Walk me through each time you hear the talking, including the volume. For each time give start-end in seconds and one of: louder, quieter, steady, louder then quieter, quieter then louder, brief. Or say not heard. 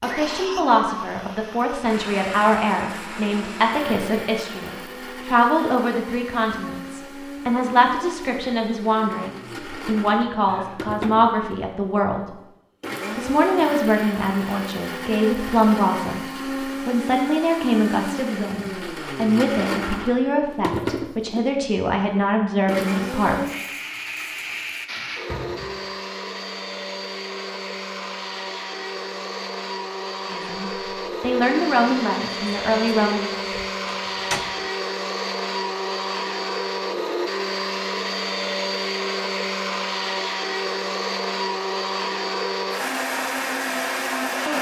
0.0-12.2 steady
13.2-23.6 steady
30.3-33.3 brief.